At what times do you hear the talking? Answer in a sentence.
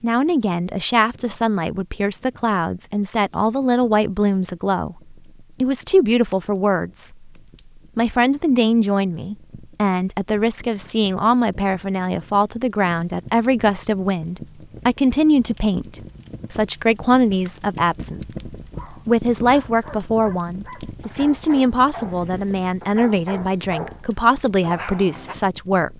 You can hear the talking from 0.0 to 7.3 s and from 8.0 to 25.9 s.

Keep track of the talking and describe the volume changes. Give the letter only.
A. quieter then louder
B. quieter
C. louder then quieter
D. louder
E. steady
E.